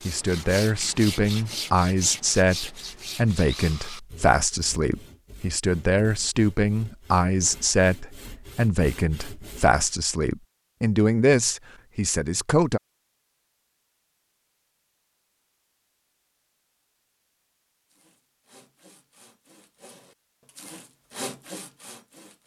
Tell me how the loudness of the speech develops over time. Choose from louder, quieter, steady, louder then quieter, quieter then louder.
steady.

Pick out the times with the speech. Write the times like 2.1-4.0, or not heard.
0.1-12.8.